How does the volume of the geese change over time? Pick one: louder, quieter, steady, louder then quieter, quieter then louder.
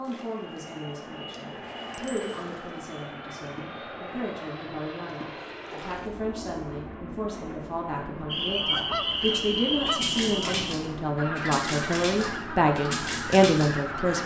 quieter.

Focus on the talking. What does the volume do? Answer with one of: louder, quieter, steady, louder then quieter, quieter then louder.
louder.